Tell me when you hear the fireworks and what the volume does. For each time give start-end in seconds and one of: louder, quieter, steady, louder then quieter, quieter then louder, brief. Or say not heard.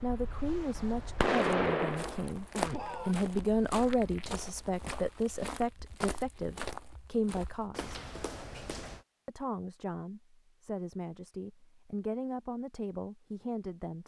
0.0-4.3 louder then quieter.